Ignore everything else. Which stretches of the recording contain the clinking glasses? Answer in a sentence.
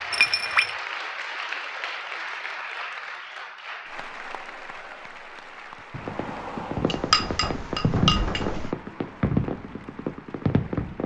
You can hear the clinking glasses from 0.1 to 0.8 s and from 6.8 to 8.8 s.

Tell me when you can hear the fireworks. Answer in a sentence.
The fireworks can be heard from 5.9 to 11.0 s.